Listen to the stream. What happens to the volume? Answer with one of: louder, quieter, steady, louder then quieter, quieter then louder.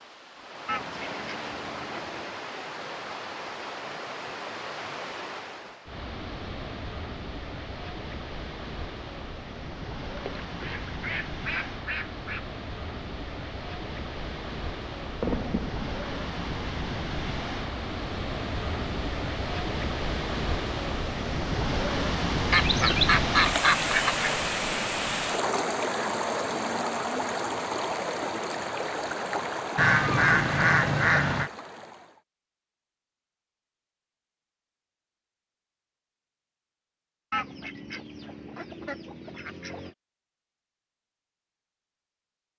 louder.